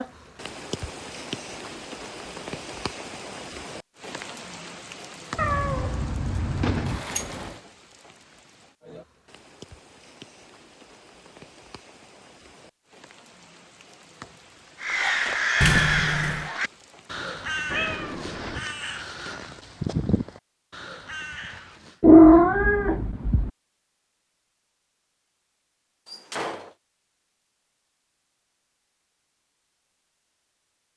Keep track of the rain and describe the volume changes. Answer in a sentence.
The loudness of the rain goes down.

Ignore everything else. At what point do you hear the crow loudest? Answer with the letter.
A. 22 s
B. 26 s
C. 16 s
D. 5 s
C.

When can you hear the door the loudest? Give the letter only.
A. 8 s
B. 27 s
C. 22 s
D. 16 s
D.